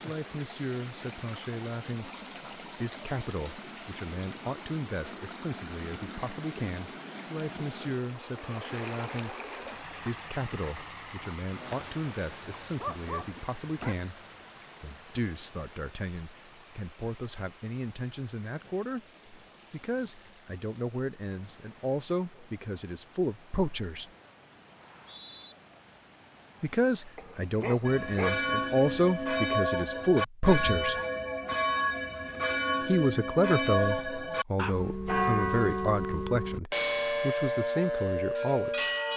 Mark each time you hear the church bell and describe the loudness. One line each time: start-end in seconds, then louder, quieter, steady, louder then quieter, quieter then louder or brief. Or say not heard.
27.9-39.1 steady.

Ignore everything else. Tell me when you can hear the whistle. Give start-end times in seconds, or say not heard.
24.8-25.6.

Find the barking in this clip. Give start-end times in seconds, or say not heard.
12.7-13.9, 27.1-28.4.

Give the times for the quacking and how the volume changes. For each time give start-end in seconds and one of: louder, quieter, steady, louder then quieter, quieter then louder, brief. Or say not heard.
not heard.